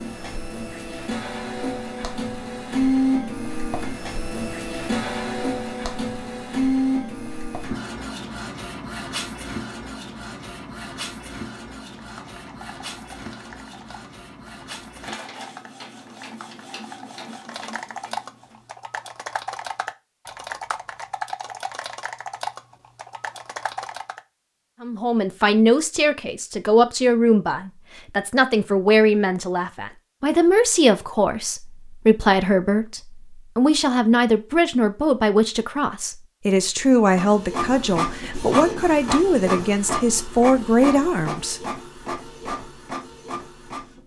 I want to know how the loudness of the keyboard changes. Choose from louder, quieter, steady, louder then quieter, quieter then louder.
louder.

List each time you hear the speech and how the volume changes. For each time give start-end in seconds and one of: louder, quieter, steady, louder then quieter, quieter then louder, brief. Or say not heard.
24.8-41.6 steady.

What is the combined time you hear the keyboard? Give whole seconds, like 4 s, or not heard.
12 s.